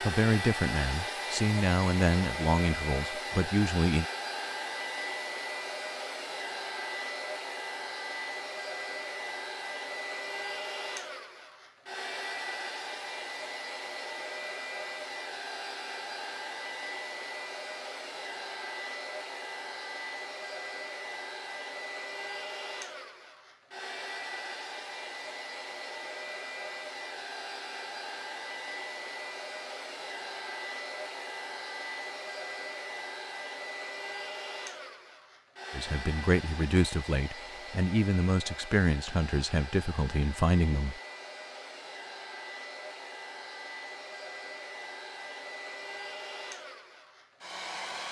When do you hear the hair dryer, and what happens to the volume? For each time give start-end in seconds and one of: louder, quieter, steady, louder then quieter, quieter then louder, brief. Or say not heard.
0.0-48.0 quieter.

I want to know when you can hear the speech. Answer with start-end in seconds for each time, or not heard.
0.0-4.0, 35.7-41.0.